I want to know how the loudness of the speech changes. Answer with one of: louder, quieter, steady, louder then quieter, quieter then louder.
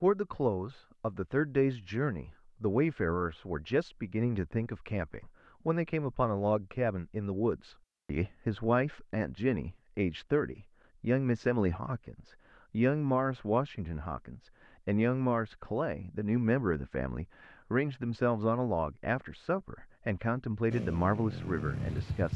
steady.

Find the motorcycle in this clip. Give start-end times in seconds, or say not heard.
20.7-22.3.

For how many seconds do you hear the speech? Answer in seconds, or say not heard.
22 s.